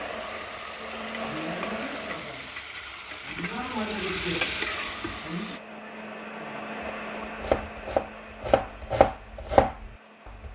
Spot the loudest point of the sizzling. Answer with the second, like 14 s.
4 s.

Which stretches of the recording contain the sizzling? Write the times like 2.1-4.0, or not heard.
0.0-5.6.